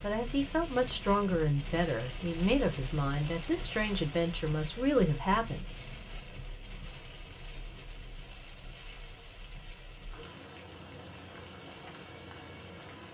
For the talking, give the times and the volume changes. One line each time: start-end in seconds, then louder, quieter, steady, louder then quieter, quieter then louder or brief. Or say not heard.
0.0-5.7 steady.